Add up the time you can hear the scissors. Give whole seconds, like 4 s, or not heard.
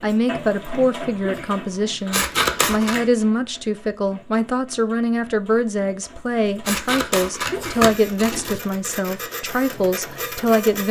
3 s.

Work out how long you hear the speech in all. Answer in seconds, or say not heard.
11 s.